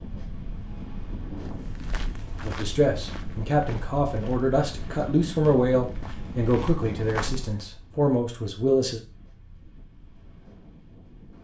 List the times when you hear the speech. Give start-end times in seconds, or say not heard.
2.4-9.0.